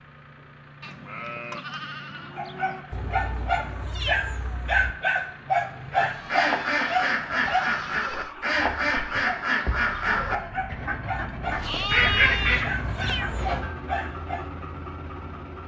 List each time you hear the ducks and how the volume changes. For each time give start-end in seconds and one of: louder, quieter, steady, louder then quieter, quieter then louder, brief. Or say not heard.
5.9-13.4 quieter then louder.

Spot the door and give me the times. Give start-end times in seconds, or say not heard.
not heard.